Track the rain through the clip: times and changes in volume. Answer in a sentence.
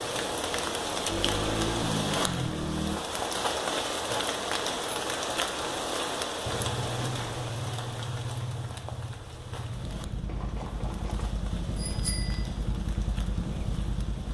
You can hear the rain from 0.0 to 14.2 s, getting quieter.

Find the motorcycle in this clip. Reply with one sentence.
You can hear the motorcycle from 0.0 to 3.0 s and from 6.4 to 14.2 s.